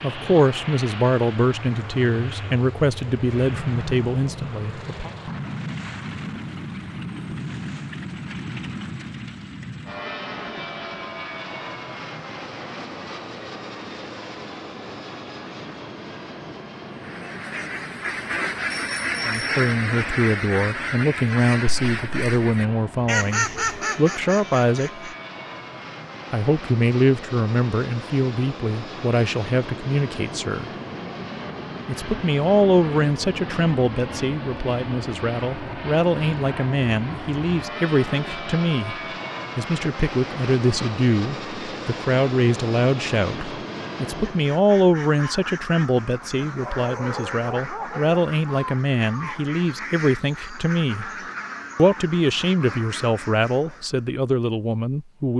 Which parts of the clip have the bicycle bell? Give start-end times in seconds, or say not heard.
18.7-19.6.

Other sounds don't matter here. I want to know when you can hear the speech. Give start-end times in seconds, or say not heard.
0.0-5.1, 19.2-25.1, 26.3-30.7, 31.9-51.1, 51.8-55.3.